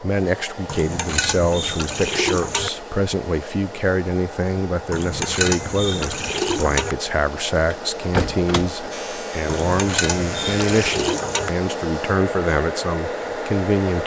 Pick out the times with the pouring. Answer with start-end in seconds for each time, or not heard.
0.7-2.7, 4.9-7.0, 9.4-11.5.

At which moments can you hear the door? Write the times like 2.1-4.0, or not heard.
7.7-8.9.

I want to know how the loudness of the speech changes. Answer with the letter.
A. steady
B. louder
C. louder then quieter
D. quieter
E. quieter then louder
A.